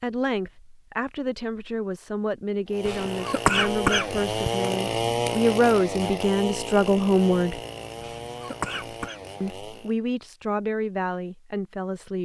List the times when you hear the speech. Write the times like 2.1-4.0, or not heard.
0.0-7.6, 9.4-12.2.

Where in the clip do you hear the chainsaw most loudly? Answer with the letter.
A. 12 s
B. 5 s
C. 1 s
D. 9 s
B.